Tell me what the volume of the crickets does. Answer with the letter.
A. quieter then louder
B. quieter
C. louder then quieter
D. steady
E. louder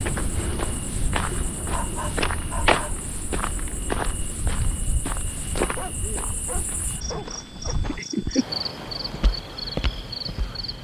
E.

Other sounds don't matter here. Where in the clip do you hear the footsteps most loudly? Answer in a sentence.
The volume of the footsteps peaks at 3 seconds.